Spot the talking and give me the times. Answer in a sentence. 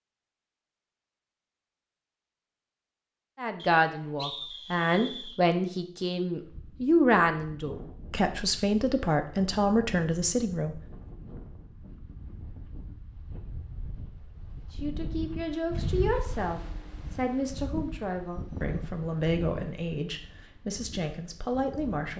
The talking can be heard from 3.4 to 10.8 s and from 14.7 to 22.1 s.